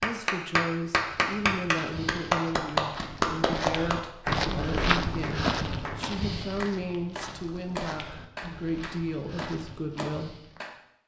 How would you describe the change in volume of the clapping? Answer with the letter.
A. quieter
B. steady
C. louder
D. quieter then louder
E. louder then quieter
A.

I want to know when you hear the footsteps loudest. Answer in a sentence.
The loudest moment of the footsteps is at 5 seconds.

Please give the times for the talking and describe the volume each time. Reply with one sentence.
You can hear the talking from 0.0 to 10.3 s, at a steady volume.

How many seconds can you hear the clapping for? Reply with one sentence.
You can hear the clapping for 11 seconds altogether.